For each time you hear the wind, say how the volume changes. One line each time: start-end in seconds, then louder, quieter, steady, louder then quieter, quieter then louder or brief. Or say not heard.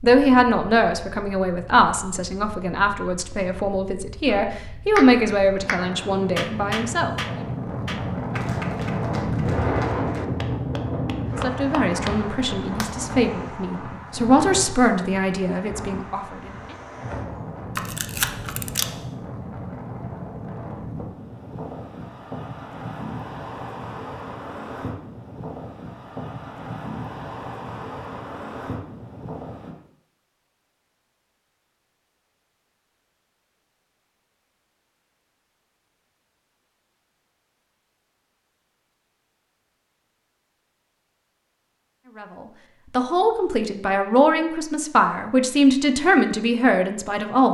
0.0-29.8 louder then quieter.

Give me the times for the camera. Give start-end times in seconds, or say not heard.
17.8-18.9.